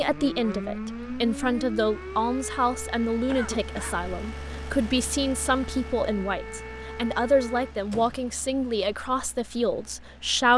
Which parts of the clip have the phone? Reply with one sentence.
You can't hear the phone here.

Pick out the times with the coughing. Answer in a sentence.
The coughing can be heard from 3.2 to 4.0 s.